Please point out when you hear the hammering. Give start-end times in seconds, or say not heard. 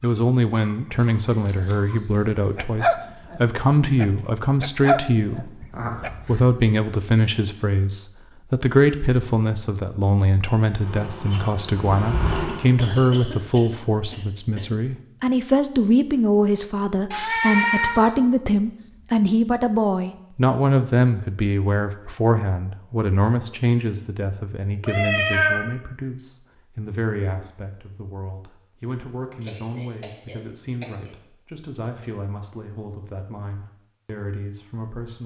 not heard.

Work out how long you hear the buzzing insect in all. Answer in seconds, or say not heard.
2 s.